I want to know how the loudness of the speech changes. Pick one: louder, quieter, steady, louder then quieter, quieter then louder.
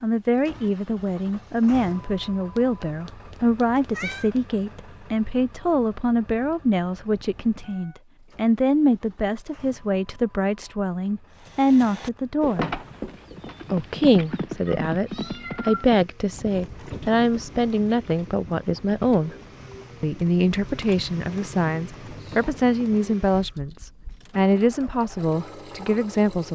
steady.